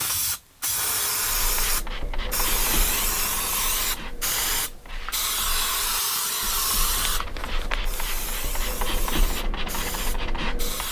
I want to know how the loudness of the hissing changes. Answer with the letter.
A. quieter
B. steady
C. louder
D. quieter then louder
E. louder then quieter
A.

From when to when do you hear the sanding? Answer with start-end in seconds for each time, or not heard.
1.2-10.8.